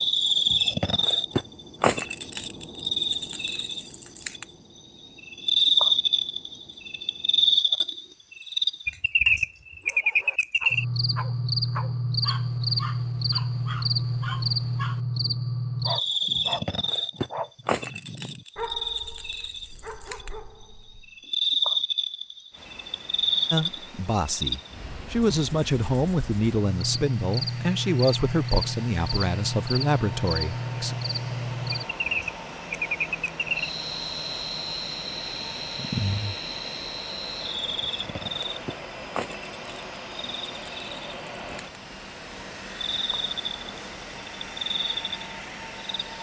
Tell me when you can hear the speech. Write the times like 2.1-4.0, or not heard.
23.5-30.9.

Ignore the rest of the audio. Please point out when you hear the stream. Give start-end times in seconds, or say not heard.
not heard.